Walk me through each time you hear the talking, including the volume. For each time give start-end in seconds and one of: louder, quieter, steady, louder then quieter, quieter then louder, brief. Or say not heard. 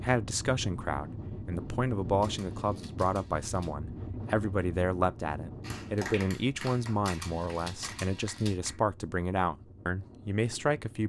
0.0-11.0 steady.